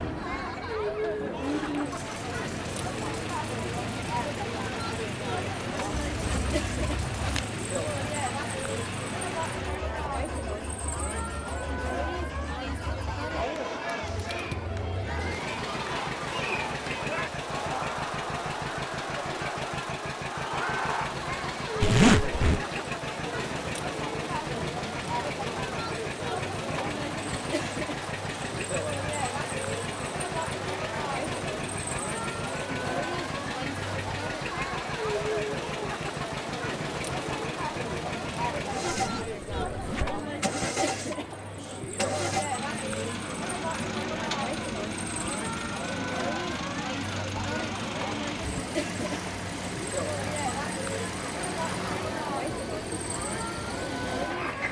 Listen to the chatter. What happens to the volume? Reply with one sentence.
The loudness of the chatter stays about the same.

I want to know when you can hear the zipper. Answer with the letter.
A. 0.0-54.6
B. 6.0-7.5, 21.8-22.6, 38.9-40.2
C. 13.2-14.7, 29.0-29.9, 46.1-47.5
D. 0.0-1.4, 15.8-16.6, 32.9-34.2
B.